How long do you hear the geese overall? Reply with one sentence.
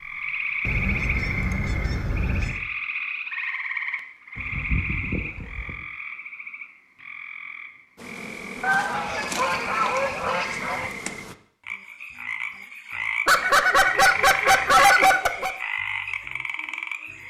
The geese can be heard for 8 seconds in total.